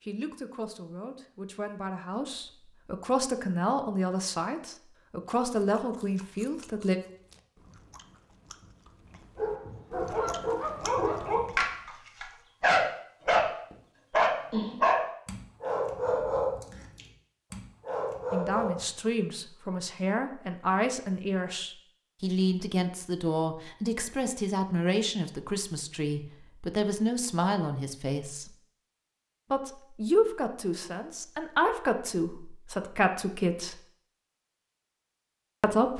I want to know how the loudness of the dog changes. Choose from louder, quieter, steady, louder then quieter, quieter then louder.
louder then quieter.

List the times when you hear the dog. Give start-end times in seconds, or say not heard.
9.3-13.5, 14.1-18.9.